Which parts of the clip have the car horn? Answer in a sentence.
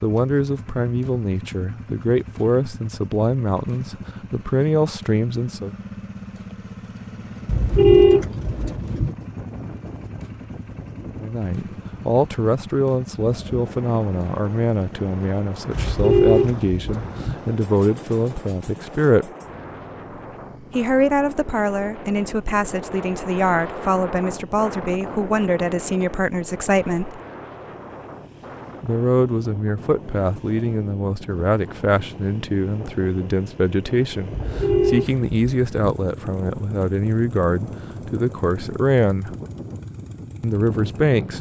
You can hear the car horn from 7.5 to 9.2 s, from 15.8 to 17.4 s and from 34.3 to 36.0 s.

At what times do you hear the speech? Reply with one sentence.
You can hear the speech from 0.0 to 5.8 s, from 11.2 to 19.3 s, from 20.7 to 27.2 s, from 28.8 to 39.4 s and from 40.4 to 41.3 s.